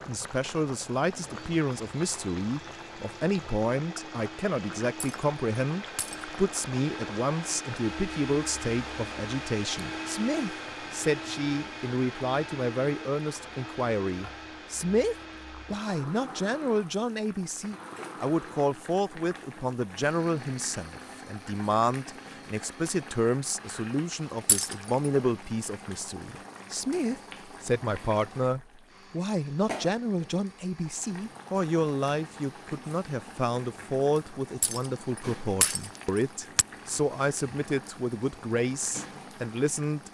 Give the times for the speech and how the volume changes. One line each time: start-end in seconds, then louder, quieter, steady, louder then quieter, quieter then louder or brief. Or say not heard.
0.1-40.0 steady.